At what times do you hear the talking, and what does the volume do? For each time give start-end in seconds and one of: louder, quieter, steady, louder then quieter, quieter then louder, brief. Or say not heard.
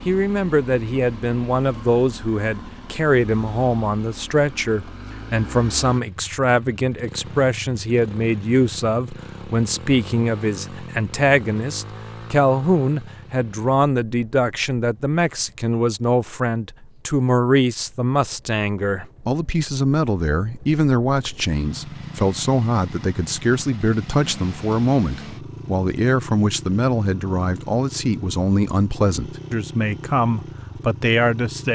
0.1-31.7 steady.